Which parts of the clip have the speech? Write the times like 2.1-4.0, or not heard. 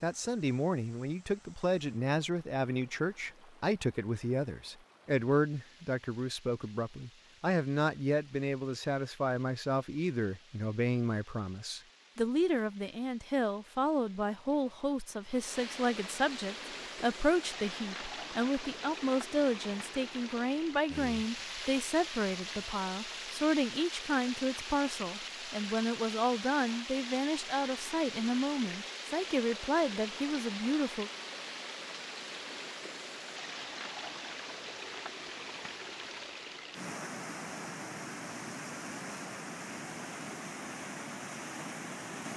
0.0-31.1.